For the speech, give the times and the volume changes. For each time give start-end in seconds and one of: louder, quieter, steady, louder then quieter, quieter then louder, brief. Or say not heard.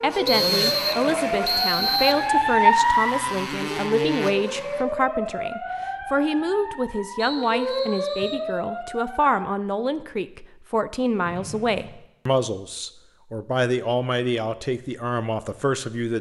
0.0-16.1 steady.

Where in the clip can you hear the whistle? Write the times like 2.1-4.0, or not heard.
0.2-2.2, 7.2-8.4, 11.2-12.0.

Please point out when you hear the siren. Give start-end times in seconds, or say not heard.
0.0-9.5.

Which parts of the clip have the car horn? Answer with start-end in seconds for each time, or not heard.
not heard.